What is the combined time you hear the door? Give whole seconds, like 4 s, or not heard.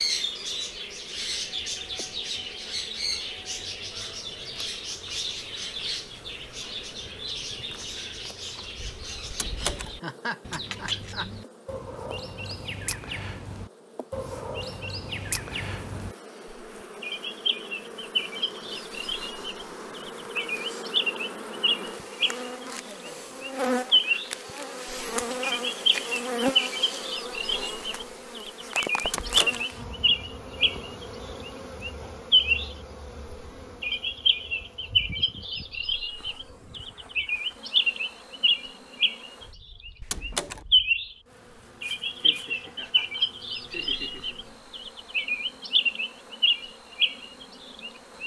2 s.